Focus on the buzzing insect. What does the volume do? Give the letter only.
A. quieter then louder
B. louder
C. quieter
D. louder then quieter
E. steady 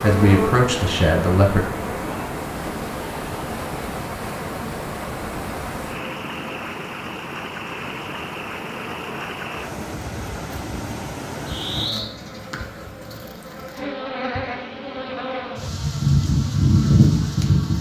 A.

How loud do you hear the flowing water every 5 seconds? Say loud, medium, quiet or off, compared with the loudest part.
loud, loud, loud, off.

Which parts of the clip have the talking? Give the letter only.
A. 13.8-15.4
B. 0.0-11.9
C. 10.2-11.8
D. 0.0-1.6
D.